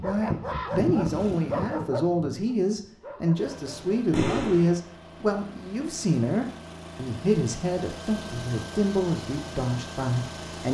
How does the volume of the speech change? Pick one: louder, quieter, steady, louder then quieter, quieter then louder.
steady.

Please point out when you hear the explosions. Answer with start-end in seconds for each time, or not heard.
4.1-4.8.